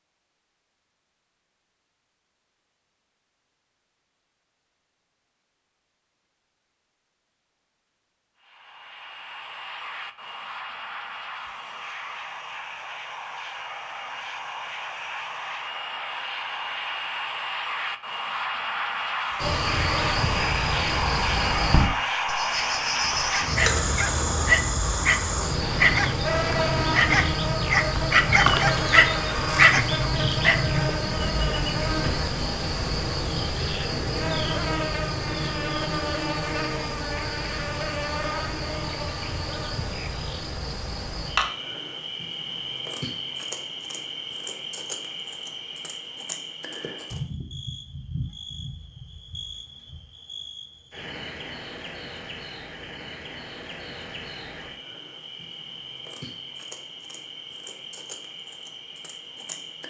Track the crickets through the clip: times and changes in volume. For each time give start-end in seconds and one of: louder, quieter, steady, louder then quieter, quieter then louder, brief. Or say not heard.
19.4-59.8 quieter.